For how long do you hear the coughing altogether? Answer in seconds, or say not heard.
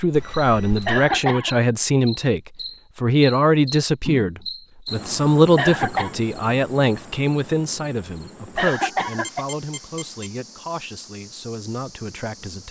2 s.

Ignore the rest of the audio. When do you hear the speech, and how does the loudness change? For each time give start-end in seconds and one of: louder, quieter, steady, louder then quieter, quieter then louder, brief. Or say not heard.
0.0-12.6 quieter.